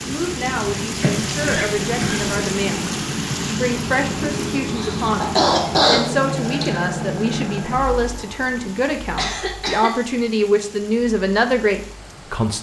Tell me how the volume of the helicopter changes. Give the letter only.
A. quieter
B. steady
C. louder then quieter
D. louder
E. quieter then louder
A.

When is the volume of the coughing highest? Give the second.
6 s.